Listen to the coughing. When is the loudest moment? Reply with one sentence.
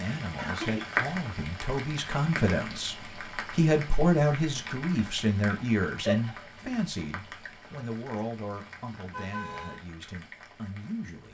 The loudest moment of the coughing is at 6 seconds.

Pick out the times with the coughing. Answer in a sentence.
The coughing can be heard from 0.3 to 1.0 s and from 6.0 to 6.5 s.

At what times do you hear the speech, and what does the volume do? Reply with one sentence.
You can hear the speech from 0.0 to 11.3 s, getting louder then quieter.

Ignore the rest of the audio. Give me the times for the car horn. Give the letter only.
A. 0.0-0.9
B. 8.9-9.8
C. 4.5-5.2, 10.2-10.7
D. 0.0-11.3
B.